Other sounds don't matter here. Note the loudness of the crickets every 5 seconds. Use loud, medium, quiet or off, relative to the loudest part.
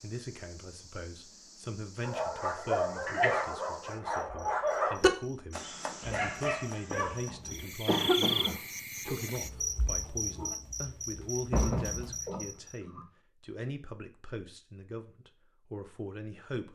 quiet, loud, loud, off.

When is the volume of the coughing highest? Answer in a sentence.
The volume of the coughing peaks at 8 seconds.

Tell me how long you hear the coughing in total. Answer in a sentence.
You can hear the coughing for 3 seconds altogether.